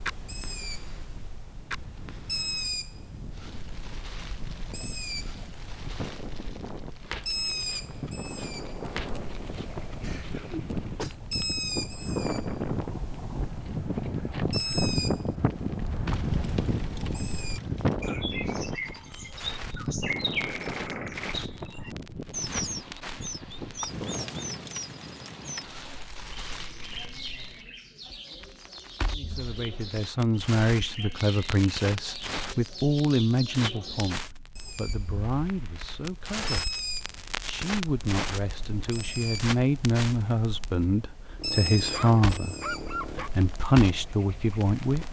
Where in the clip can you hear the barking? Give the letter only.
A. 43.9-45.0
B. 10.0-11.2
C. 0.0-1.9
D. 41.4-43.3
D.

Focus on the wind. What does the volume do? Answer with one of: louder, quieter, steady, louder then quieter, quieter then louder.
louder then quieter.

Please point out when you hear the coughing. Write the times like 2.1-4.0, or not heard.
10.0-11.2.